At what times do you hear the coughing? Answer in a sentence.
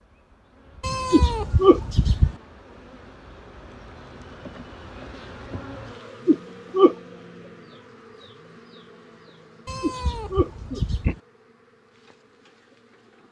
The coughing can be heard from 1.1 to 1.8 s, from 6.2 to 7.0 s and from 9.8 to 11.2 s.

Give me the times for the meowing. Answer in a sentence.
You can hear the meowing from 0.8 to 2.4 s and from 9.7 to 11.2 s.